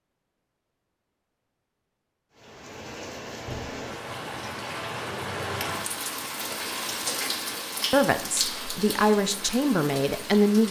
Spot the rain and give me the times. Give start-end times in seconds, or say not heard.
2.4-10.6.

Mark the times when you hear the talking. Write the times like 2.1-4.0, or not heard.
7.9-10.6.